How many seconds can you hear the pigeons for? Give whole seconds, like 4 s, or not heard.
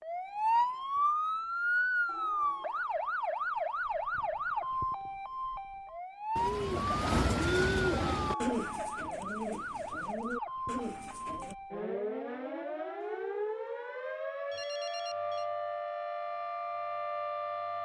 5 s.